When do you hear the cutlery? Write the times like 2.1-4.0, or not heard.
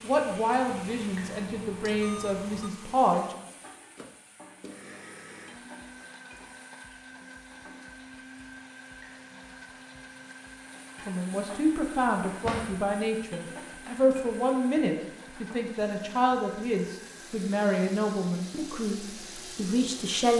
not heard.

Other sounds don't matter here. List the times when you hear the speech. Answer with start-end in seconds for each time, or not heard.
0.0-3.4, 11.1-20.3.